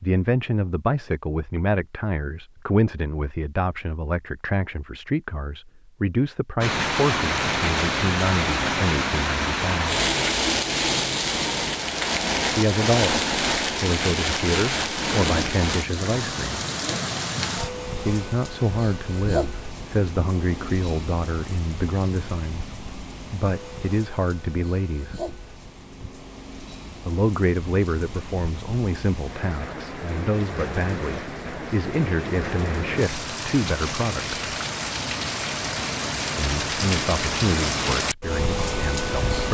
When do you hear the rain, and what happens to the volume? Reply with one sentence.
You can hear the rain from 6.6 to 39.4 s, getting quieter then louder.